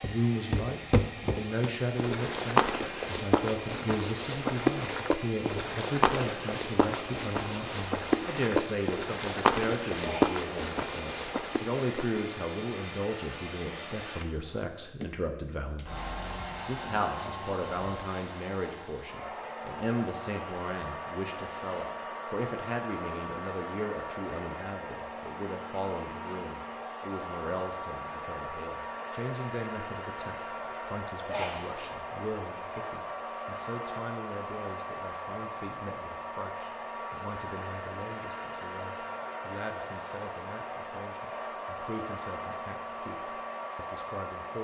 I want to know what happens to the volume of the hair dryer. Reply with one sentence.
The volume of the hair dryer stays about the same.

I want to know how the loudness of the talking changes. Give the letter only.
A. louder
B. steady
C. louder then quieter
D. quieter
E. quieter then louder
D.